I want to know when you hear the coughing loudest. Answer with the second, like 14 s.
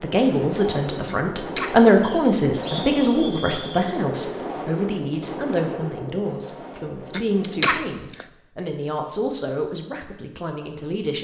8 s.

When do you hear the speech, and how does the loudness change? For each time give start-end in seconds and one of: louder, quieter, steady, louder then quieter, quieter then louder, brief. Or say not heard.
0.0-11.1 quieter.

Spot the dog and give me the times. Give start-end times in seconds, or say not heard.
not heard.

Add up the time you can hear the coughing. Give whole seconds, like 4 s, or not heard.
2 s.